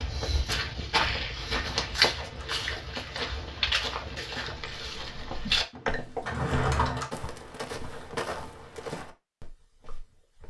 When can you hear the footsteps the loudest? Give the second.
2 s.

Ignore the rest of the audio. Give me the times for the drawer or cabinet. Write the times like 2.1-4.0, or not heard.
1.8-3.4, 6.2-7.1.